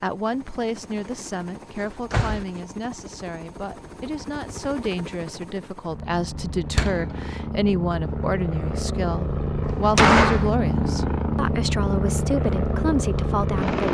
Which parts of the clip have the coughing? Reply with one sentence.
The coughing can't be heard in this clip.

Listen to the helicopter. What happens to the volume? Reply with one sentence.
The loudness of the helicopter goes up.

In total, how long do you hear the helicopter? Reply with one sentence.
You can hear the helicopter for 14 seconds altogether.